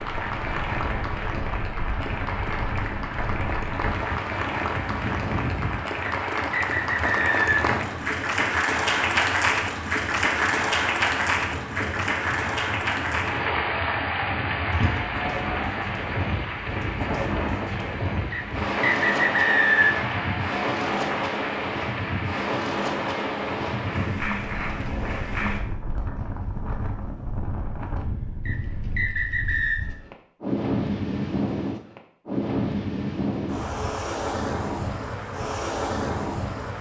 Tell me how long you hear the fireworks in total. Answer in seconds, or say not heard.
not heard.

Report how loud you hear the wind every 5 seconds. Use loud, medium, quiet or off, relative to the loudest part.
medium, medium, medium, loud, loud, medium, loud, loud.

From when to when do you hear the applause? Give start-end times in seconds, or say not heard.
0.0-25.6.